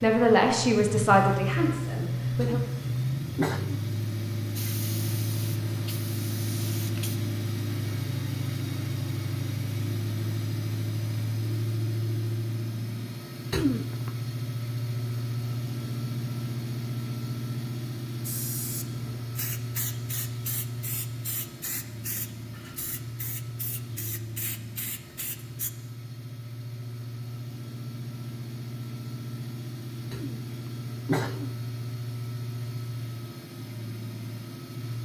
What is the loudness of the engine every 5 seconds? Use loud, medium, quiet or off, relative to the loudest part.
loud, loud, loud, loud, medium, medium, medium.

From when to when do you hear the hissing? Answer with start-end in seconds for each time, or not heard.
4.5-7.2, 18.2-25.7.